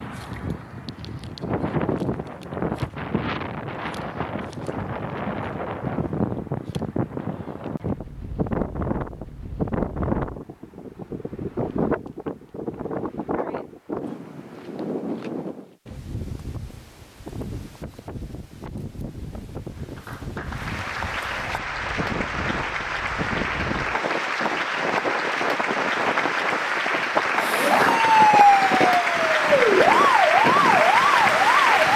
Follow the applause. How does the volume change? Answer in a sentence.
The volume of the applause goes up.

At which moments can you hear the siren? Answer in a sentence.
You can hear the siren from 27.4 to 31.9 s.